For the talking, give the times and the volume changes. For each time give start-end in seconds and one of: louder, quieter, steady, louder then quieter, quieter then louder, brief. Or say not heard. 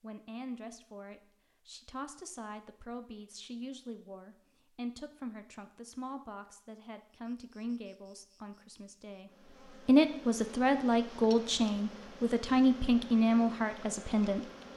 0.0-14.5 louder.